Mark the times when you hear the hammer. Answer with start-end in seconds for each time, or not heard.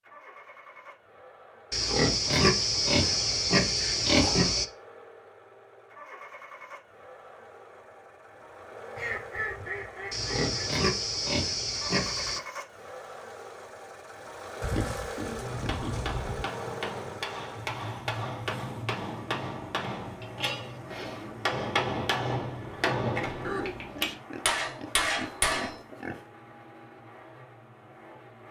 15.3-25.8.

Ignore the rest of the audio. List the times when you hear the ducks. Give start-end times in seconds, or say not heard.
8.9-10.8.